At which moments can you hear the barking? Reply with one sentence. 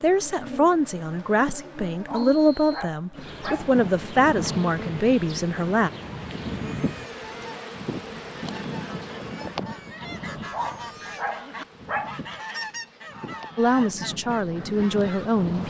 The barking can be heard from 1.9 to 3.8 s and from 10.3 to 12.2 s.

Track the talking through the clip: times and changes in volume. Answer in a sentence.
You can hear the talking from 0.0 to 5.9 s, at a steady volume; and briefly from 13.6 to 15.6 s.